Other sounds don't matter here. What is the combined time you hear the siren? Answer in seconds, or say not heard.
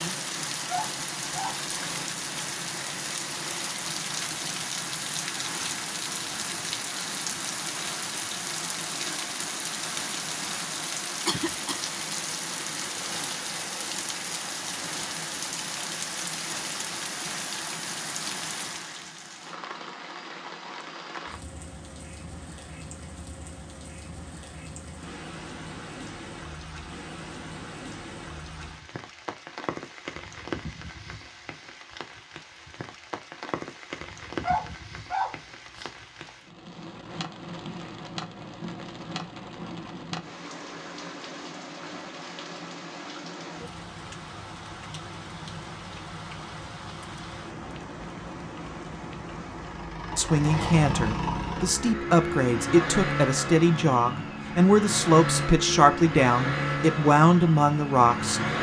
not heard.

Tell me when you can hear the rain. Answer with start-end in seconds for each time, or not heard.
0.0-50.0.